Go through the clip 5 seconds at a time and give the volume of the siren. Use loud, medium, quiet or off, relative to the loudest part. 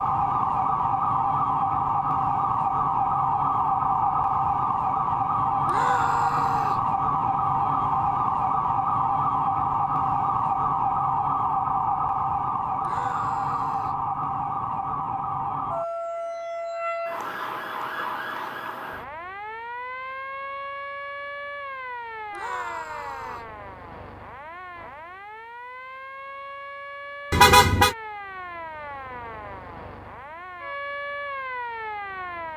loud, loud, loud, medium, quiet, quiet, medium.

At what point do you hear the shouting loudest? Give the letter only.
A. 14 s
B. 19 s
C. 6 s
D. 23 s
C.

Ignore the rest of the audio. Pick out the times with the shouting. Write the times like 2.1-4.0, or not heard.
5.7-6.8, 12.8-14.0, 22.3-23.5.